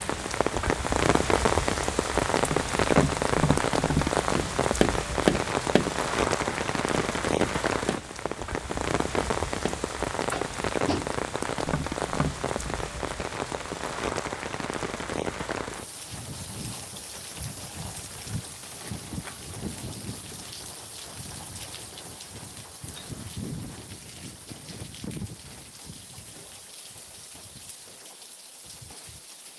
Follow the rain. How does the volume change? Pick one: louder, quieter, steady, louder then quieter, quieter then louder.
quieter.